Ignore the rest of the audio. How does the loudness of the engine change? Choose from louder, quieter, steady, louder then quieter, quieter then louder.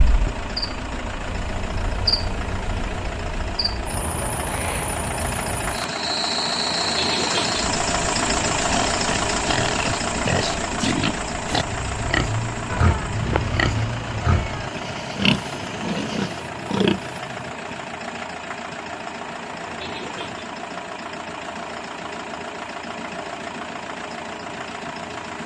louder then quieter.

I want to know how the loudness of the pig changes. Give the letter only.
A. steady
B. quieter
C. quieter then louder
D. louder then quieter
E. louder
A.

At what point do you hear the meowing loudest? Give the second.
13 s.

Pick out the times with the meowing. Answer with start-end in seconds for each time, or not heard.
12.7-14.7.